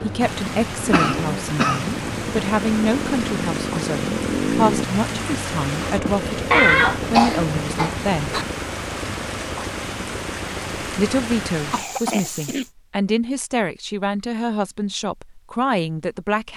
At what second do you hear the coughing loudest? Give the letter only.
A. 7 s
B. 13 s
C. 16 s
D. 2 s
A.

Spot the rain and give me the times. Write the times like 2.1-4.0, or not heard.
0.0-12.7.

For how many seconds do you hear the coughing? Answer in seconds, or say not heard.
4 s.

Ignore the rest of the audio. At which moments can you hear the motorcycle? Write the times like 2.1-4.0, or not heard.
0.0-11.6.